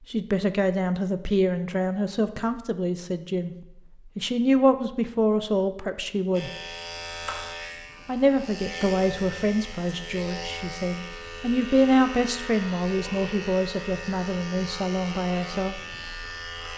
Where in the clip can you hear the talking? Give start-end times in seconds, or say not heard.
0.1-3.5, 4.2-6.5, 8.1-15.8.